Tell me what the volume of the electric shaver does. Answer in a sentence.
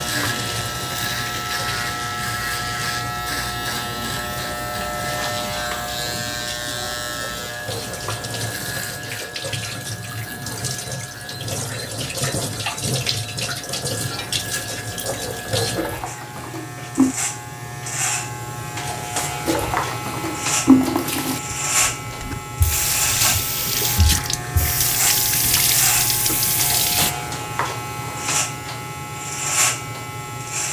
The loudness of the electric shaver goes down, then up.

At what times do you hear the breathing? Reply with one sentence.
You can't hear the breathing here.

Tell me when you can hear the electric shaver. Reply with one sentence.
You can hear the electric shaver from 0.0 to 30.6 s.